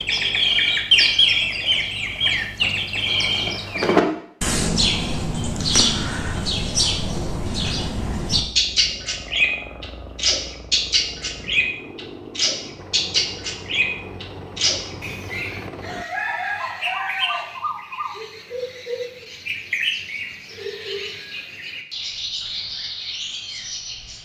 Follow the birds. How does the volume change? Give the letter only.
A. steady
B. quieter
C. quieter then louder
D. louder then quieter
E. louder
B.